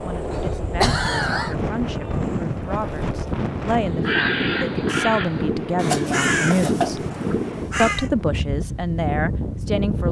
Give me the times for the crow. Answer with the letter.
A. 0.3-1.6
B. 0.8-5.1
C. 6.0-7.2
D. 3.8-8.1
D.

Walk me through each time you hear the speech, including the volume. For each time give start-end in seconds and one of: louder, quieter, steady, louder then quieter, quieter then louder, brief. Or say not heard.
0.0-7.0 louder
7.8-10.0 brief.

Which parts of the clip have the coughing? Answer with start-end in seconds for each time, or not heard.
0.3-1.6.